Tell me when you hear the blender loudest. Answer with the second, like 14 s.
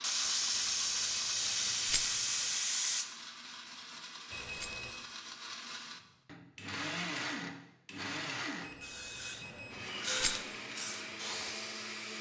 7 s.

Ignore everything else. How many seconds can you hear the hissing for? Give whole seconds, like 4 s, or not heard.
6 s.